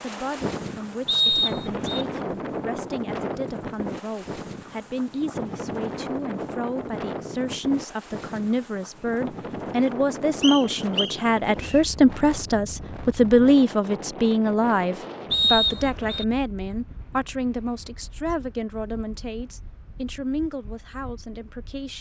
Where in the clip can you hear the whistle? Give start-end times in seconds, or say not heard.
1.1-2.0, 10.4-11.8, 15.3-16.2.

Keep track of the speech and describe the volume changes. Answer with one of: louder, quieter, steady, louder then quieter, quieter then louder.
louder then quieter.